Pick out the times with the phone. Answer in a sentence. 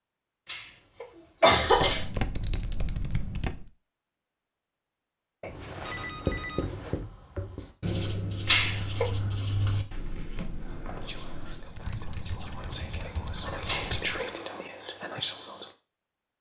You can hear the phone from 5.4 to 7.0 s.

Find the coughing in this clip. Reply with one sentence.
The coughing can be heard from 0.5 to 2.0 s, from 8.4 to 9.1 s and from 13.7 to 14.4 s.